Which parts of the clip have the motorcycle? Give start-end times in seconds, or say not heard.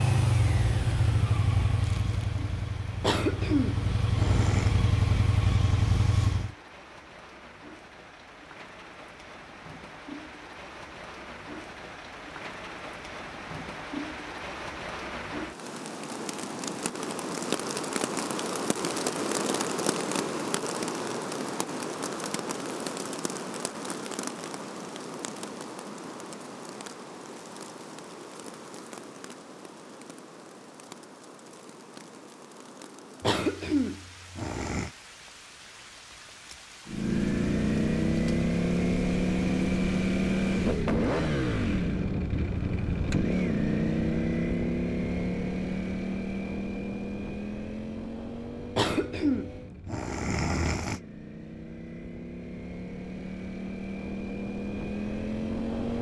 0.0-6.5, 36.9-55.9.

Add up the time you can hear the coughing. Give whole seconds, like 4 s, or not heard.
6 s.